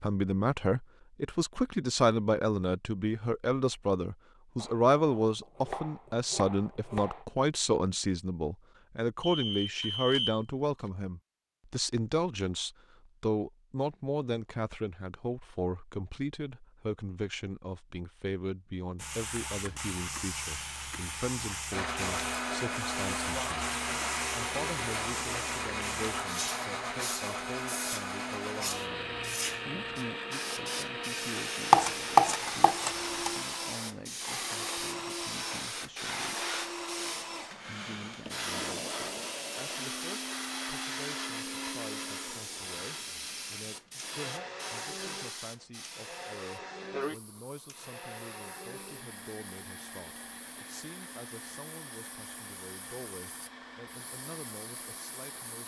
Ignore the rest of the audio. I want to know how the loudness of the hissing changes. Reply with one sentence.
The volume of the hissing goes down.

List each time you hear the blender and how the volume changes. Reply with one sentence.
The blender can be heard from 21.7 to 55.6 s, getting quieter.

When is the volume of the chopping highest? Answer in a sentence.
The volume of the chopping peaks at 32 seconds.